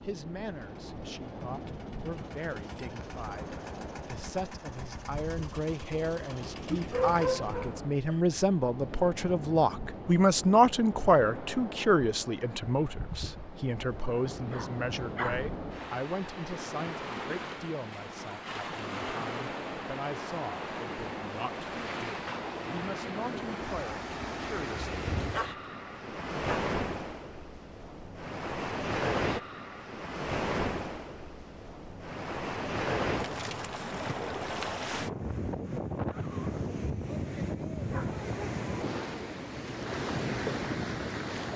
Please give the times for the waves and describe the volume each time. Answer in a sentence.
You can hear the waves from 0.0 to 41.5 s, getting louder.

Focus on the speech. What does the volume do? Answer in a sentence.
The volume of the speech goes up, then down.